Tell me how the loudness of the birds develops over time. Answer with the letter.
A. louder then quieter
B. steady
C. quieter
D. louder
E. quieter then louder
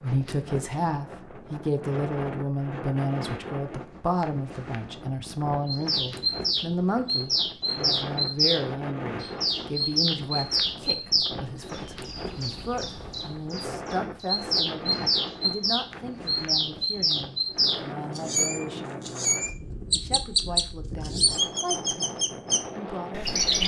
B.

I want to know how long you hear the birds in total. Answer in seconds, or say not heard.
18 s.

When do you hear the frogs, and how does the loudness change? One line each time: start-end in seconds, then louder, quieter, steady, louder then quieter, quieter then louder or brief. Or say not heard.
not heard.